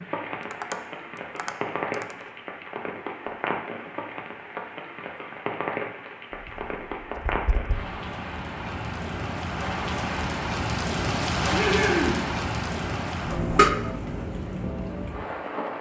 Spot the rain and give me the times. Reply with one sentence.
The rain can be heard from 0.0 to 15.7 s.